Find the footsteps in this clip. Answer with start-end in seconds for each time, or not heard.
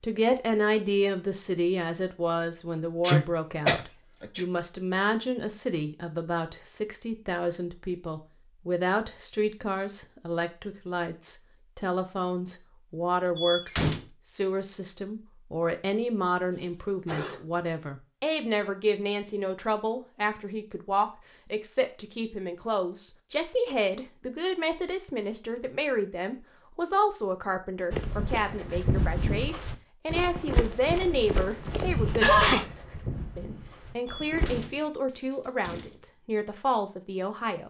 27.9-34.7.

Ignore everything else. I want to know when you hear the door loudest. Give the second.
14 s.